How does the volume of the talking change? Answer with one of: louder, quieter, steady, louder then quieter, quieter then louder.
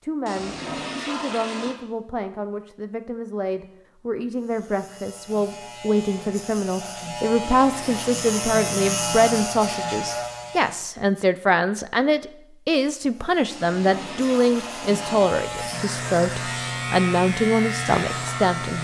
louder.